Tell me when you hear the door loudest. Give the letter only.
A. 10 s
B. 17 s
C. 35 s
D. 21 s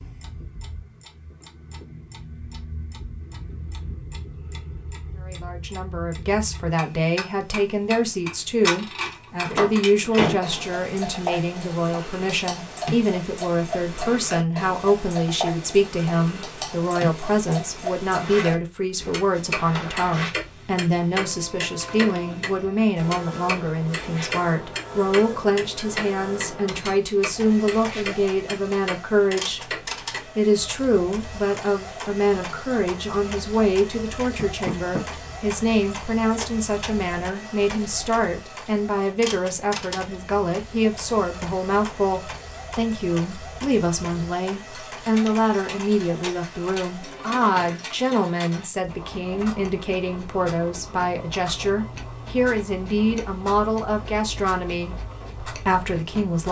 A.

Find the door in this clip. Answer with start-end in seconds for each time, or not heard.
9.4-10.4, 34.4-35.0.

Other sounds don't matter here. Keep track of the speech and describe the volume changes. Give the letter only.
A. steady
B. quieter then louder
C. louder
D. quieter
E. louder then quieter
A.